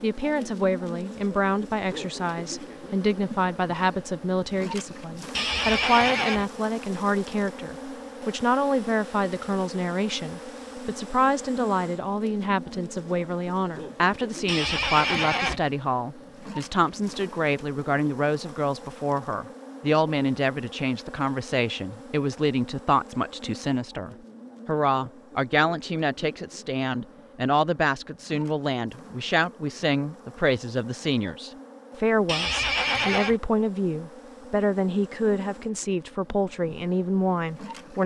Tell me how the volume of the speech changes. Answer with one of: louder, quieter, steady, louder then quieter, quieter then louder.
steady.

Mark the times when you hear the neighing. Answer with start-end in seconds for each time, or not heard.
5.3-6.5, 14.4-15.6, 32.2-33.4.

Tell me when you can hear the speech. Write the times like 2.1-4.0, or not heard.
0.0-38.0.